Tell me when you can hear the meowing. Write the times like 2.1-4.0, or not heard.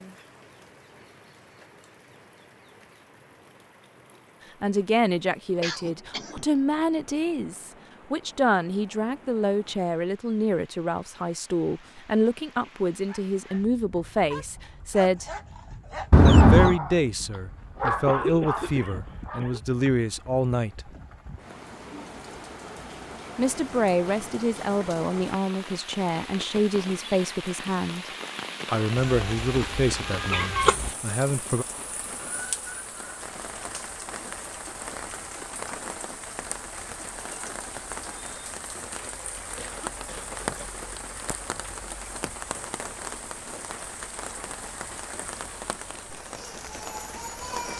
16.1-16.8, 28.9-30.9.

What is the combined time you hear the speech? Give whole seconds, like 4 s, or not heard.
23 s.